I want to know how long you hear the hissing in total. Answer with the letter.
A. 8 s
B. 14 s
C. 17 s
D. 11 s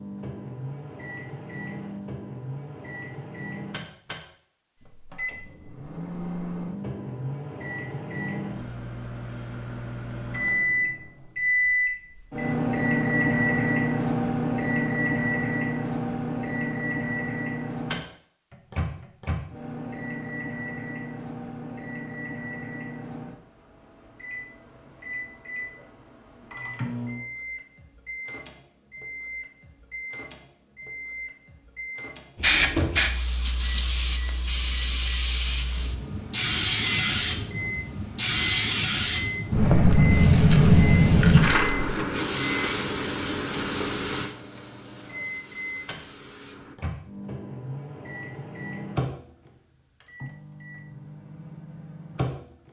B.